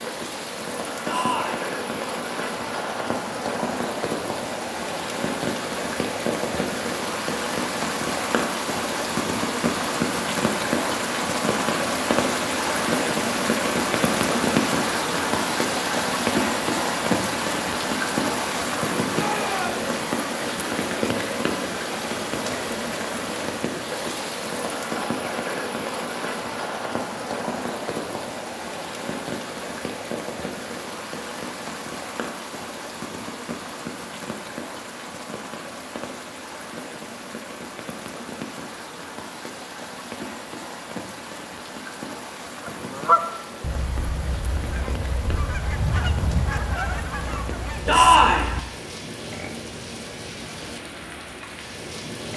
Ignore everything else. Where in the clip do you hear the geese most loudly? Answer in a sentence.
The volume of the geese peaks at 43 seconds.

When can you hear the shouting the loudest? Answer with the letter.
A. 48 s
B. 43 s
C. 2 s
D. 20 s
A.